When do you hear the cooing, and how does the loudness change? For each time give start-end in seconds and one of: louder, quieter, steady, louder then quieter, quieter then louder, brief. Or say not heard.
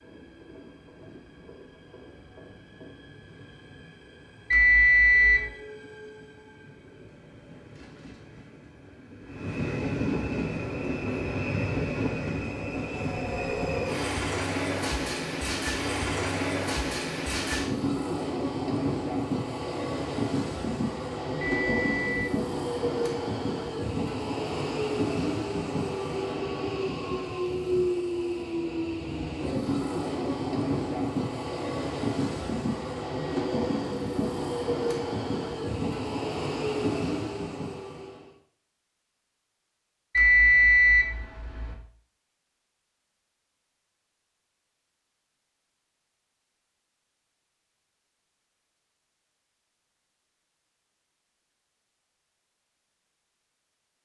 not heard.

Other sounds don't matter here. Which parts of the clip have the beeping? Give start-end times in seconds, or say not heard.
4.5-5.5, 21.4-22.3, 40.1-41.8.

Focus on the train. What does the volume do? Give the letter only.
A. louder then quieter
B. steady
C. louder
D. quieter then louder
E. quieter
C.